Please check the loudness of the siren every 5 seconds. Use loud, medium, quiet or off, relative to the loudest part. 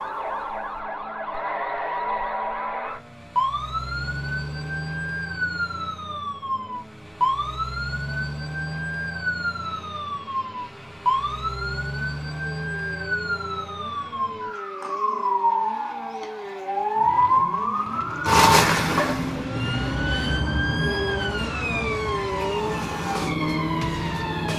medium, medium, medium, loud, medium.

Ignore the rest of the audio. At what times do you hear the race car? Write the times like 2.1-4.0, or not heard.
0.0-24.5.